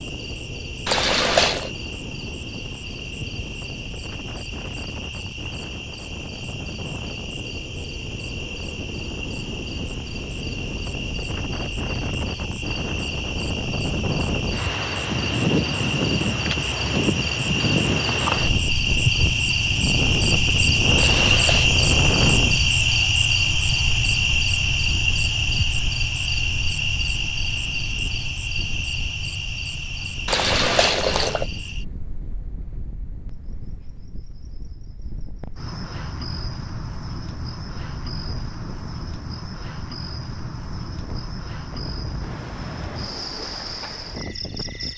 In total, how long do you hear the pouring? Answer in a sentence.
The pouring can be heard for 3 seconds in total.